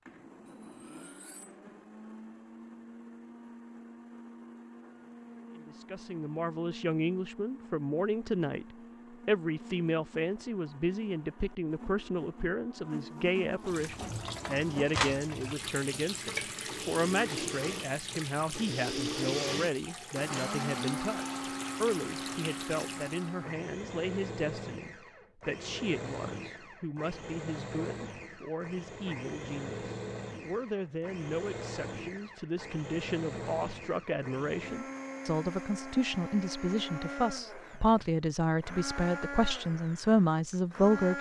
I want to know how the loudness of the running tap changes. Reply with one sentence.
The loudness of the running tap goes down.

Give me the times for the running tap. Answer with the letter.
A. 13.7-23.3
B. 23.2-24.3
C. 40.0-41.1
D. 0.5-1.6
A.